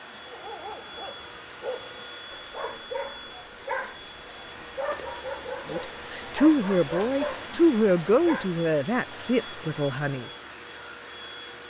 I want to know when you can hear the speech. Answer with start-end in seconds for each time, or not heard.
5.7-10.2.